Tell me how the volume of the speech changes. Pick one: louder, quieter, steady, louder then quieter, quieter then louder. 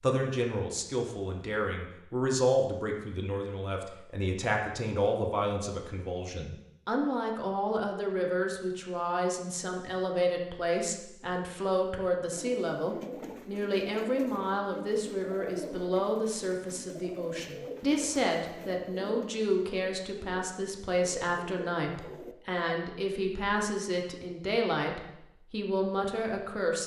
steady.